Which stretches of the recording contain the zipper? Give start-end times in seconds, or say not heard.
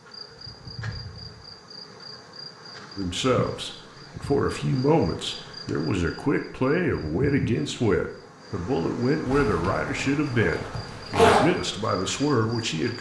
9.2-11.4.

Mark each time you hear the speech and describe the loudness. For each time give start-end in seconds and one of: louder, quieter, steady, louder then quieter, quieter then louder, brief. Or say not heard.
3.0-12.9 steady.